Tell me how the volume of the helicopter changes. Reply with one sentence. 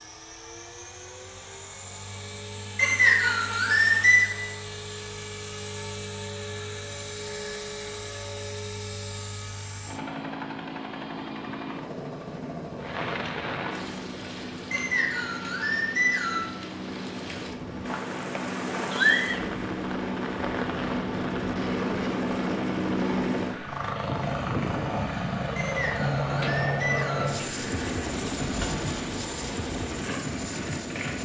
The loudness of the helicopter goes up.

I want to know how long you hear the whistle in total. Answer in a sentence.
The whistle can be heard for 5 seconds in total.